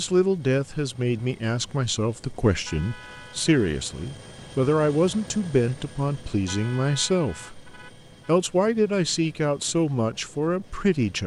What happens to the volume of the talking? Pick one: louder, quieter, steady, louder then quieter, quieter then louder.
steady.